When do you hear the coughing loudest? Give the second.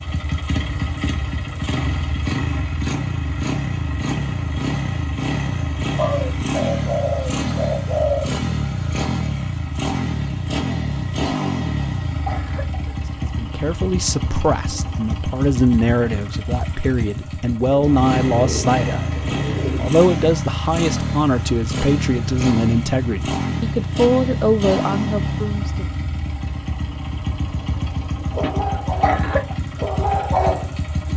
29 s.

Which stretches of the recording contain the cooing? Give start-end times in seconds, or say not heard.
6.0-8.3, 17.6-19.9.